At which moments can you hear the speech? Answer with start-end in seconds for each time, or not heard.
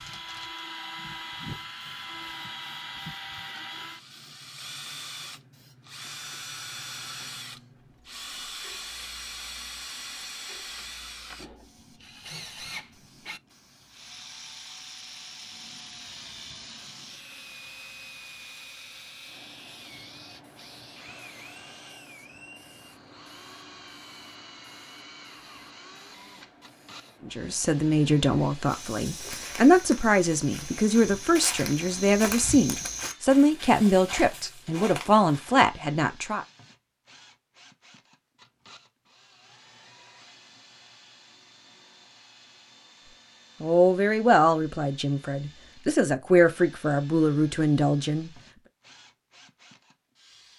27.2-36.5, 43.6-48.3.